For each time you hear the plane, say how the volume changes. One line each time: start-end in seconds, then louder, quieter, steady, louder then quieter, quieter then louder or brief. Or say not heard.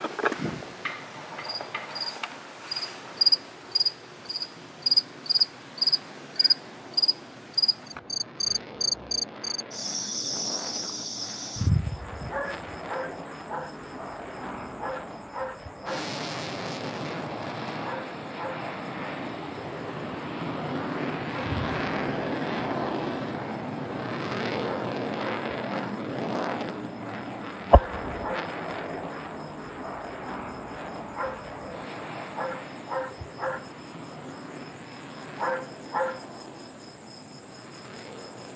0.0-38.5 louder then quieter.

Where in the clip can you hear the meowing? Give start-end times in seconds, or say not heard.
27.7-28.1.